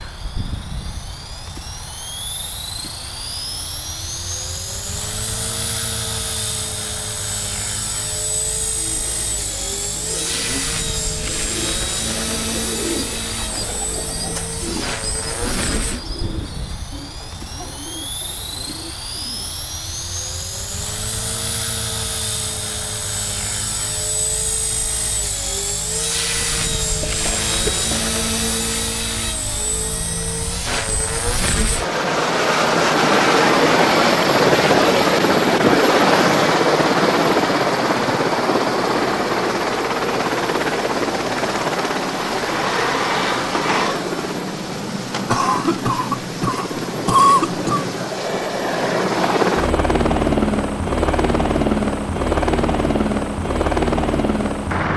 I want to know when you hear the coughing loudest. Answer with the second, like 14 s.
47 s.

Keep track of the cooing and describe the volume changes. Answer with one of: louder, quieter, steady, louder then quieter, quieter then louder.
louder then quieter.